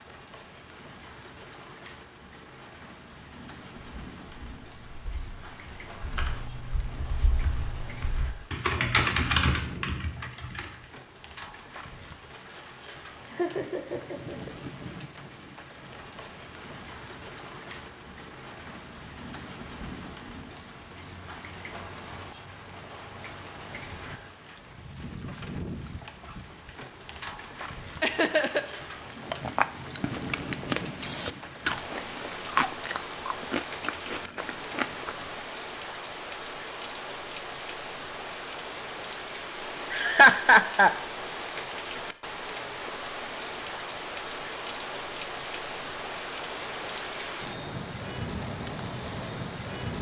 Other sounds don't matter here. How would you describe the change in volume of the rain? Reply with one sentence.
The volume of the rain goes up.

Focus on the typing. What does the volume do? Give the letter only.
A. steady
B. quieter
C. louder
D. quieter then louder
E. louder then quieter
C.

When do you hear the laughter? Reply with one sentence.
The laughter can be heard from 13.2 to 14.5 s, from 28.0 to 28.6 s and from 39.9 to 40.9 s.